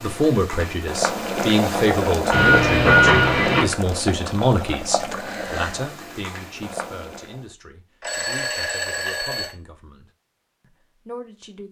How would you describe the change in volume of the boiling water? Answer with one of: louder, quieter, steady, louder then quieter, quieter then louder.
quieter.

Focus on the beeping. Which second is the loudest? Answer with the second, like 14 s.
3 s.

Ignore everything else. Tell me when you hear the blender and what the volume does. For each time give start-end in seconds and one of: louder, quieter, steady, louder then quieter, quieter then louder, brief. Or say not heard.
not heard.